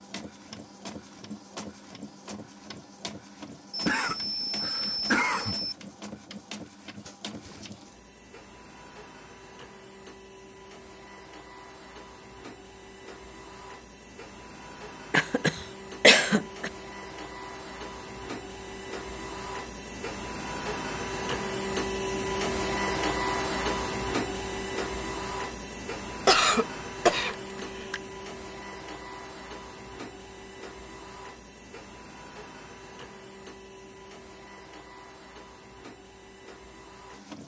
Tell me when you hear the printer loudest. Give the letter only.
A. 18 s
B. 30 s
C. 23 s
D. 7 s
C.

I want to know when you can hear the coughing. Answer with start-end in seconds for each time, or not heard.
3.7-5.8, 15.1-16.7, 26.2-28.0.